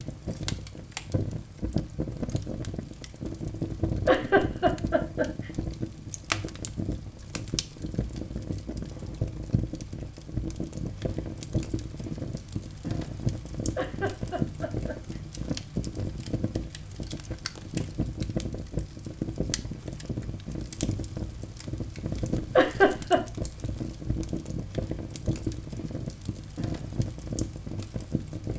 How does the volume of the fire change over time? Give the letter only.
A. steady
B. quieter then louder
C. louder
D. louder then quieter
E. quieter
A.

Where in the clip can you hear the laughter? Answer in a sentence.
The laughter can be heard from 4.0 to 5.5 s, from 13.8 to 15.2 s and from 22.6 to 23.2 s.